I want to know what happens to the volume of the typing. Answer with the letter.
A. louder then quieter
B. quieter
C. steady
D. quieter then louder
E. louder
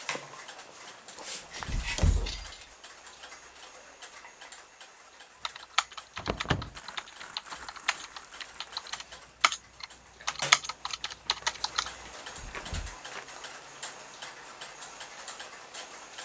E.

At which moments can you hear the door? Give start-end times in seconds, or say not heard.
1.6-2.6, 6.2-6.7, 12.2-13.0.